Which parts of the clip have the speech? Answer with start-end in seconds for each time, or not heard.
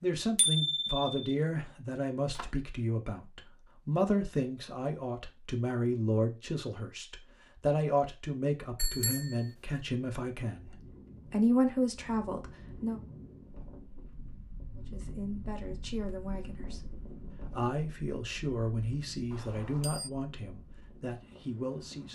0.0-13.0, 14.8-16.8, 17.5-22.1.